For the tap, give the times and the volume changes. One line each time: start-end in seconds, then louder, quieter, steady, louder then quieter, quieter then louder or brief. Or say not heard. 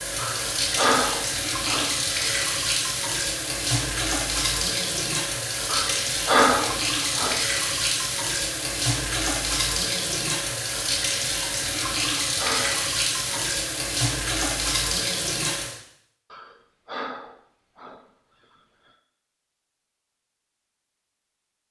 0.0-15.8 steady.